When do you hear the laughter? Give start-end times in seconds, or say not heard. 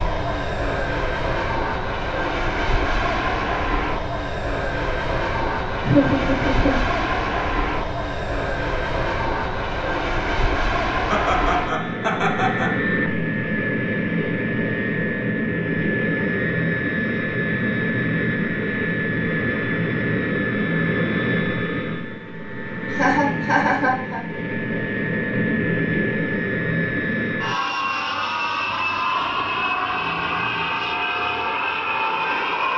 5.8-7.0, 11.1-12.7, 22.9-24.2.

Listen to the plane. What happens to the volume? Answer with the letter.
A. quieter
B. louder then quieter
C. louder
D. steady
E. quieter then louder
D.